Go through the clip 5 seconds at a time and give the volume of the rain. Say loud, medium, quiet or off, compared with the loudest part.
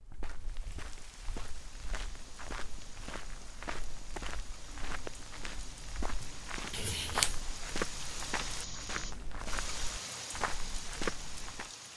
medium, loud, loud.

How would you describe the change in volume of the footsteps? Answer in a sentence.
The volume of the footsteps goes up.